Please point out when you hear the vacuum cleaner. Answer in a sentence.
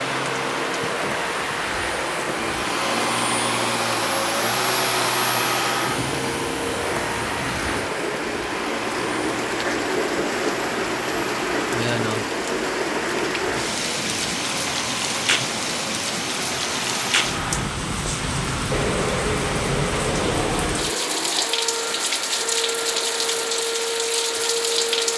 The vacuum cleaner can be heard from 0.0 to 25.1 s.